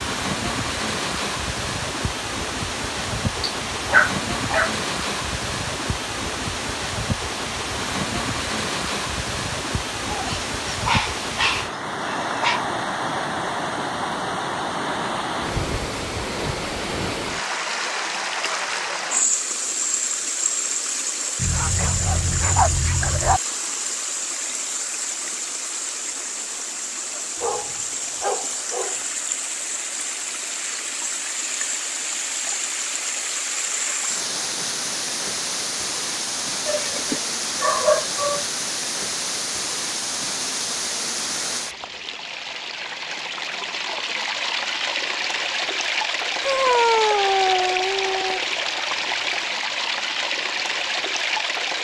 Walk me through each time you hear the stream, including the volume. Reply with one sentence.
You can hear the stream from 0.0 to 51.7 s, at a steady volume.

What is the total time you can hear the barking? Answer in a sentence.
You can hear the barking for 12 seconds altogether.